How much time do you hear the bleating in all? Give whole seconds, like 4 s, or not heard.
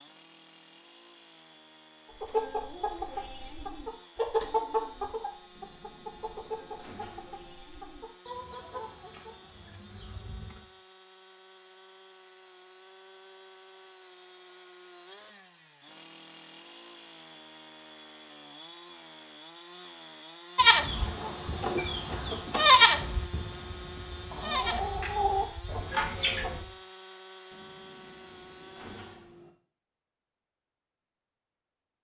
6 s.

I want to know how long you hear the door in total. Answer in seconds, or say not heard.
4 s.